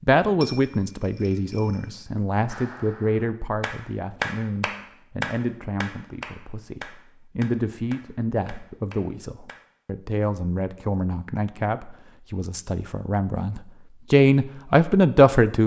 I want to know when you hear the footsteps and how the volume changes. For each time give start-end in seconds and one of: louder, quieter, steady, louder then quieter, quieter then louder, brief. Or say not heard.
not heard.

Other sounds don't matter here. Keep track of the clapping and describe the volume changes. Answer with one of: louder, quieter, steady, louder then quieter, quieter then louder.
louder then quieter.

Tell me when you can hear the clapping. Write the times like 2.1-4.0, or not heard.
2.5-9.7.